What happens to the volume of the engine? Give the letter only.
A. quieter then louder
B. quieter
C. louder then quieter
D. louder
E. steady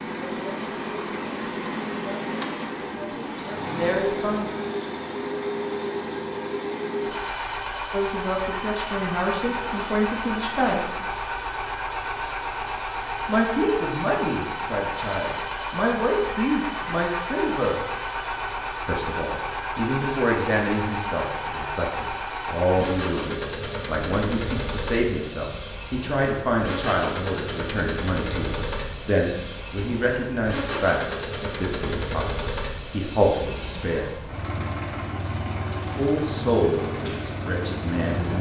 E.